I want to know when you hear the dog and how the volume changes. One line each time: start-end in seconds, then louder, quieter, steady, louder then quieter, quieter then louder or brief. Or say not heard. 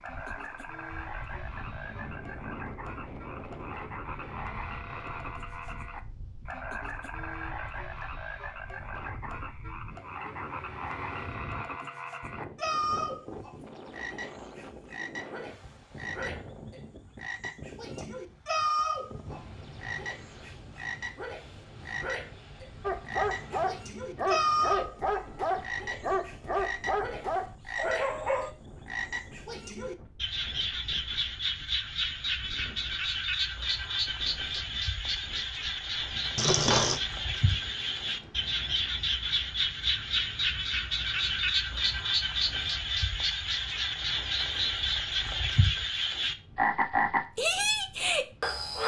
22.8-28.5 steady.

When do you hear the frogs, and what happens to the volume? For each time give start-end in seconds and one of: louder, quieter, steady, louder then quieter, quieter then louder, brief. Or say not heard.
0.0-48.8 louder.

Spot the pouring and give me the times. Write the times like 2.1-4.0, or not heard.
36.4-37.0.